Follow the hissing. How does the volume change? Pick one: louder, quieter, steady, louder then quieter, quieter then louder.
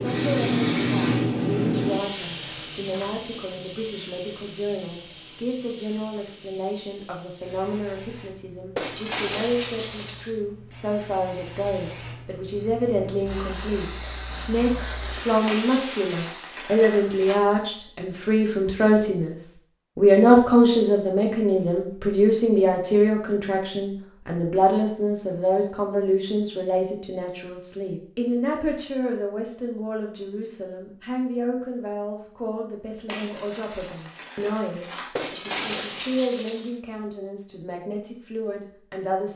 quieter then louder.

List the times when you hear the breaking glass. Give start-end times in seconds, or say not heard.
8.8-10.4, 35.1-36.8.